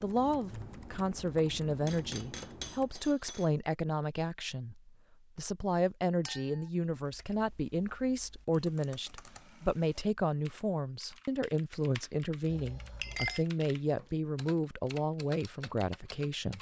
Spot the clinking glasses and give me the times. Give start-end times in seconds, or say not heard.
1.9-3.5, 6.2-6.7, 12.4-13.4.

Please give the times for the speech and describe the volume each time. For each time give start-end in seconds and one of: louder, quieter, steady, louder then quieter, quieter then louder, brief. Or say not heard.
0.0-16.5 steady.